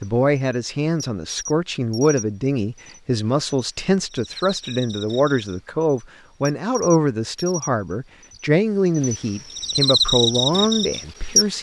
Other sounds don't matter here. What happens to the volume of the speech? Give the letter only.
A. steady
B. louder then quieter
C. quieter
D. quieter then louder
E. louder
A.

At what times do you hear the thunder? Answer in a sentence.
The thunder can't be heard in this clip.